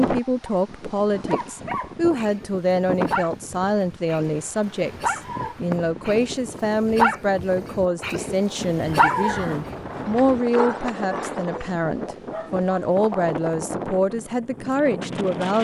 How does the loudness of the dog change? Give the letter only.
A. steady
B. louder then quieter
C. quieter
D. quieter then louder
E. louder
B.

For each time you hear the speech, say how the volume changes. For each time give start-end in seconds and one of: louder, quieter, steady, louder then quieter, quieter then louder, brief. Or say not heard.
0.0-15.5 steady.